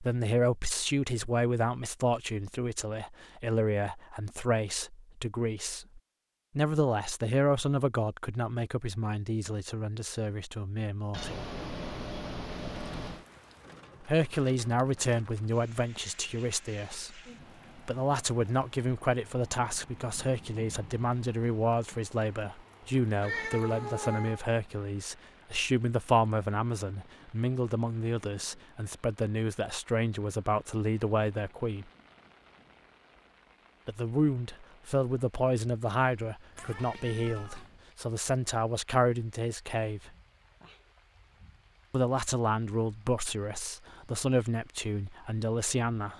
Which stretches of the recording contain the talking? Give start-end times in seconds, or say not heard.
0.0-11.3, 14.0-31.9, 33.9-40.1, 41.9-46.1.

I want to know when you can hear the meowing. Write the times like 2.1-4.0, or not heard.
11.1-13.2, 23.2-24.4, 36.5-37.8.